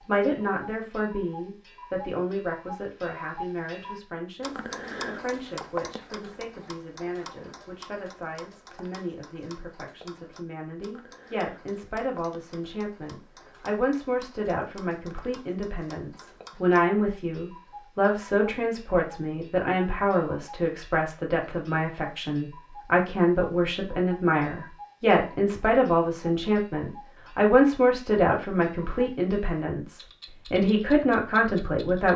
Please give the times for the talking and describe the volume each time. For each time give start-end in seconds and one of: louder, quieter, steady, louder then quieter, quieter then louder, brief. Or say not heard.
0.1-32.1 louder.